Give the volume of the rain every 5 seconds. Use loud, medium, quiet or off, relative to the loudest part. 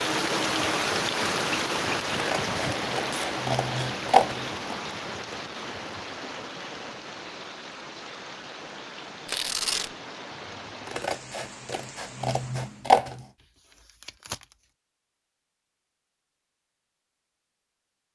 loud, medium, quiet, off.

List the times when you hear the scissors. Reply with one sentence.
You can hear the scissors from 2.1 to 4.8 s and from 10.8 to 13.2 s.